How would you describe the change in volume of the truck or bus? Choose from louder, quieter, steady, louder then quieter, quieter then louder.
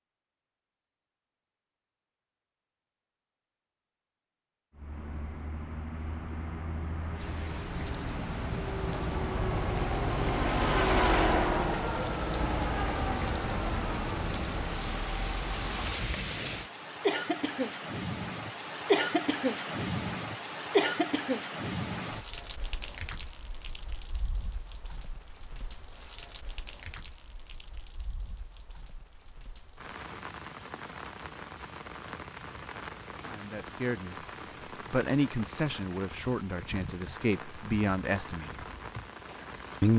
louder then quieter.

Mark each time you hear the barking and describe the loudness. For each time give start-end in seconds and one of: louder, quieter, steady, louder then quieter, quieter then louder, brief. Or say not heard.
not heard.